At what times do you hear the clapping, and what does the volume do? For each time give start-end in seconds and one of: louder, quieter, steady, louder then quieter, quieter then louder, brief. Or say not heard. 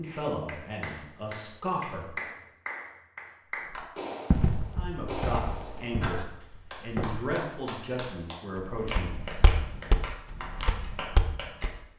0.0-11.9 steady.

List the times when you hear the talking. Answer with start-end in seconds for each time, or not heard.
0.0-2.2, 4.8-9.2.